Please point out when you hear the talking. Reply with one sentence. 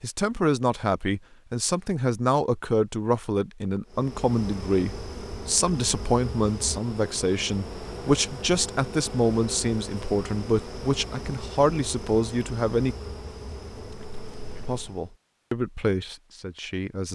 You can hear the talking from 0.0 to 12.9 s and from 14.7 to 17.1 s.